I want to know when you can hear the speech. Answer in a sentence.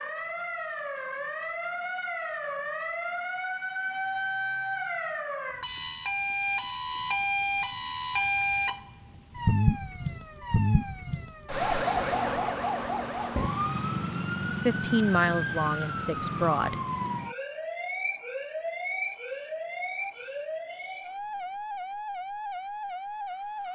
You can hear the speech from 14.5 to 16.8 s.